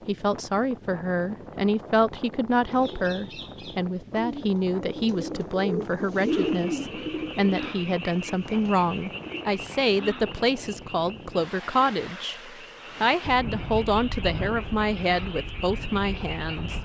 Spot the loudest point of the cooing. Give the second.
6 s.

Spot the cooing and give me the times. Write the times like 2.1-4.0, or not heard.
2.8-9.4.